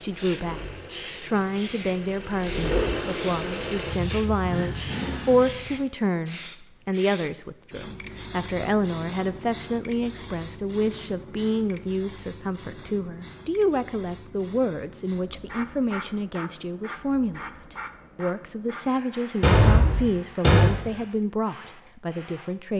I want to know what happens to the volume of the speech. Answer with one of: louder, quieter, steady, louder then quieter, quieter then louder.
steady.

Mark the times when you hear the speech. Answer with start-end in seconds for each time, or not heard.
0.0-22.7.